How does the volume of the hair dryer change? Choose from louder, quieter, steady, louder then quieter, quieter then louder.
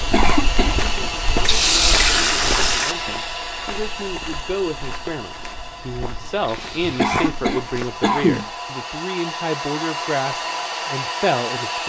quieter then louder.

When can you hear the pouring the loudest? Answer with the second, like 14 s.
2 s.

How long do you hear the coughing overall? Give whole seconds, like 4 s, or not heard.
2 s.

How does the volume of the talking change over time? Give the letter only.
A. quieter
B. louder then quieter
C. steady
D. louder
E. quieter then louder
D.